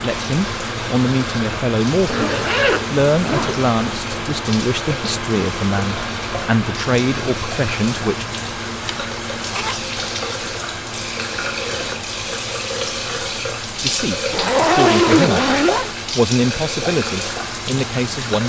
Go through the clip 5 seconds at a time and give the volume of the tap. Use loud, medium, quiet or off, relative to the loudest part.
medium, medium, loud, loud.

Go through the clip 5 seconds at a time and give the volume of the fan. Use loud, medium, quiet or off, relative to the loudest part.
loud, loud, medium, medium.